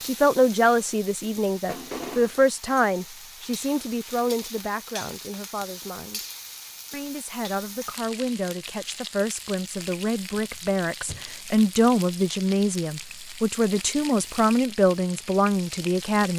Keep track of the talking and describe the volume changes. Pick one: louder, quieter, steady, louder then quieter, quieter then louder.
quieter then louder.